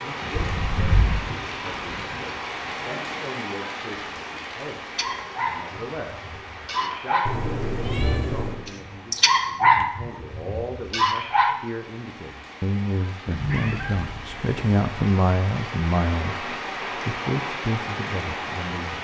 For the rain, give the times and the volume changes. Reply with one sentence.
The rain can be heard from 0.0 to 19.0 s, getting quieter then louder.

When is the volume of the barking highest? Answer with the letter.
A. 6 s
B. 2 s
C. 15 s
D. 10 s
D.